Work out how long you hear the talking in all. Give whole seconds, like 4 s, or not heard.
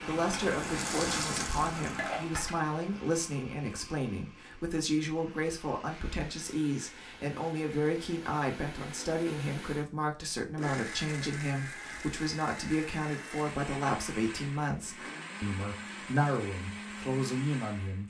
18 s.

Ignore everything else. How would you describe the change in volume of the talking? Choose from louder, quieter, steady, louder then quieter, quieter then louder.
steady.